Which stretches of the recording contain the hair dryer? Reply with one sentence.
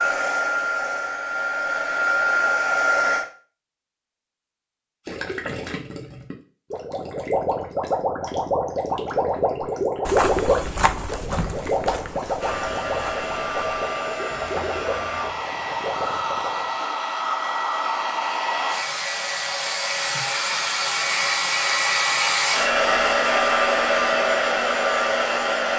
You can hear the hair dryer from 0.0 to 3.2 s and from 12.3 to 25.7 s.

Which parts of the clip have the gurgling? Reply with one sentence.
The gurgling can be heard from 5.0 to 16.8 s.